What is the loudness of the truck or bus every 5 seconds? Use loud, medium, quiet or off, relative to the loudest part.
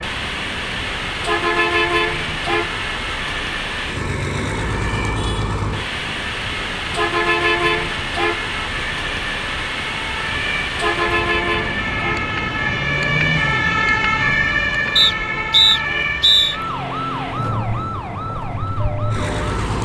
loud, loud, loud, medium.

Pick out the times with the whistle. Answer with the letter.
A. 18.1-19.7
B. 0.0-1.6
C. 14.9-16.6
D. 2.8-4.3
C.